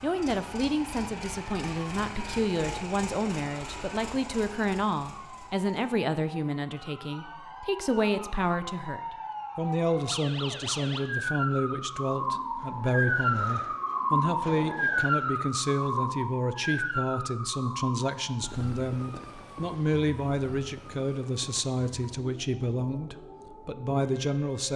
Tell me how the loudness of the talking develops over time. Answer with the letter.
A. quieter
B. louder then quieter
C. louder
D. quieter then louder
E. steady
E.